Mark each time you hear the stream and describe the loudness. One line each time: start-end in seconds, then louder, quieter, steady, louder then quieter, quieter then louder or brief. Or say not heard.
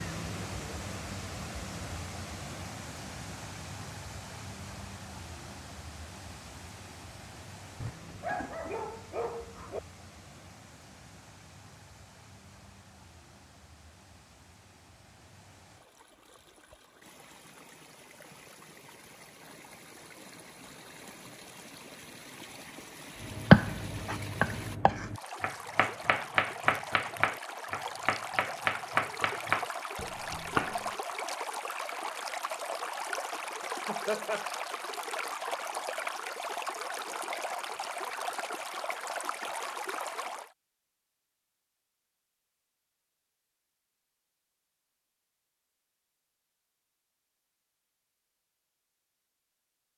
0.0-40.5 quieter then louder.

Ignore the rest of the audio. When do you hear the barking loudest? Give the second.
8 s.